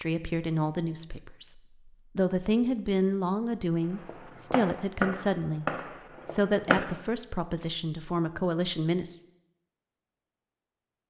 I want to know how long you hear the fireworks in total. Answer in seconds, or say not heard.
3 s.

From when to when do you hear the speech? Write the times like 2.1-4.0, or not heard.
0.0-1.6, 2.1-5.7, 6.2-9.2.